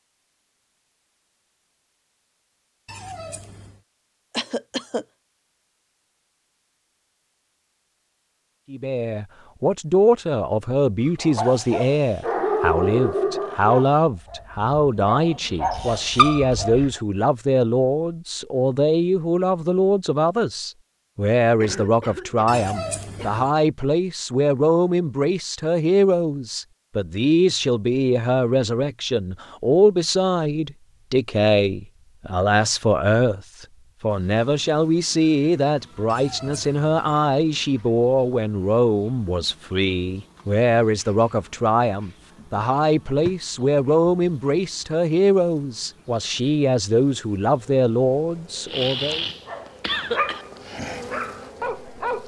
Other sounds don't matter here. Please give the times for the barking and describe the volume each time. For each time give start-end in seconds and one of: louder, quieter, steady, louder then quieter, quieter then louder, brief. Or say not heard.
11.2-17.0 quieter then louder
49.5-52.2 brief.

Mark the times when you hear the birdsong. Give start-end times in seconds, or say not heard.
not heard.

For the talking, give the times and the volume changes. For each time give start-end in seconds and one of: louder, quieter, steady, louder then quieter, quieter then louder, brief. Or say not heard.
8.7-49.2 steady.